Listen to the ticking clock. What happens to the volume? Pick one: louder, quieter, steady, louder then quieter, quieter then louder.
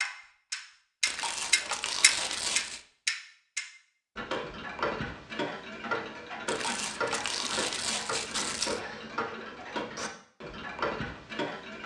quieter.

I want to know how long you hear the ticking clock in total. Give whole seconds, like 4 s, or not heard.
12 s.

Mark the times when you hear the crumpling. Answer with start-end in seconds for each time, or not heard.
1.1-2.8, 6.5-8.8.